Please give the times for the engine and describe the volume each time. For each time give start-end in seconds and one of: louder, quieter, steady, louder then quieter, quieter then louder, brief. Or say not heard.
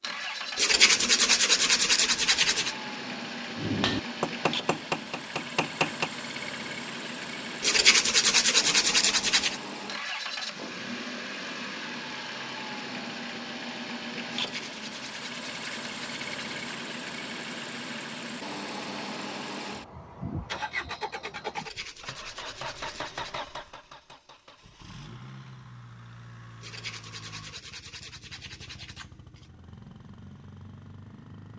0.0-31.5 quieter.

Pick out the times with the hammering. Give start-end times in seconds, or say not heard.
3.5-6.1.